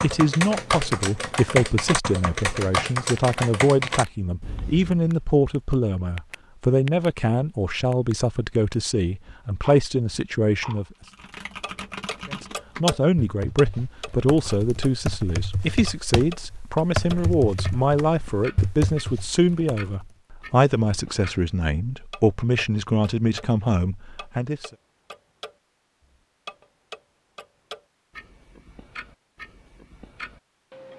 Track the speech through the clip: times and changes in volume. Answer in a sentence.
The speech can be heard from 0.0 to 10.8 s, at a steady volume; and from 12.3 to 24.7 s, at a steady volume.